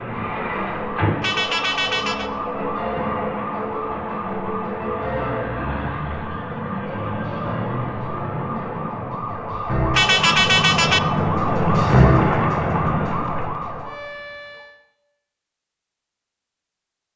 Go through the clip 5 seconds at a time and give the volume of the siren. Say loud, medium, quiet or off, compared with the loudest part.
medium, medium, loud, off.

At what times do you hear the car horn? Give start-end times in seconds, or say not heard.
1.2-2.3, 9.9-11.1.